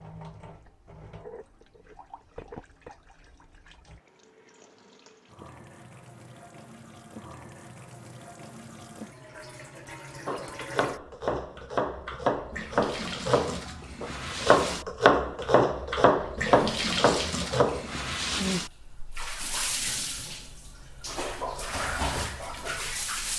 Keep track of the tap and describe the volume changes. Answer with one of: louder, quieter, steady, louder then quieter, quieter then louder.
louder.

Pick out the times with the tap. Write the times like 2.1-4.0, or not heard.
0.0-23.3.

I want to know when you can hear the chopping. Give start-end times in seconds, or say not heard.
10.2-18.6.